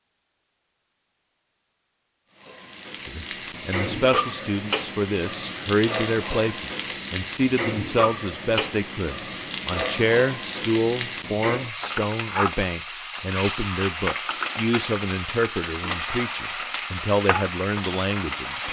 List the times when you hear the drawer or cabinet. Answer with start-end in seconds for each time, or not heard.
not heard.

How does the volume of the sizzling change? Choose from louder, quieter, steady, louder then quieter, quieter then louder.
steady.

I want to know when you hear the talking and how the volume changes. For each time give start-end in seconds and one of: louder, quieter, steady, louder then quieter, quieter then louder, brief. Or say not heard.
3.0-18.6 steady.